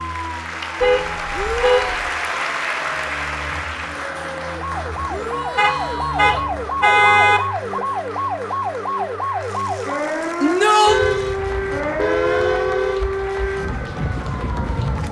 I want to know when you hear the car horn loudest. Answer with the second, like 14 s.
7 s.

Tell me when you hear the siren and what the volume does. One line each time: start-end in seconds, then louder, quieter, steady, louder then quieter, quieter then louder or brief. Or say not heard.
0.0-15.0 louder.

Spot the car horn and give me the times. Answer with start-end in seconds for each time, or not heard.
0.8-2.1, 5.5-7.4, 10.8-13.6.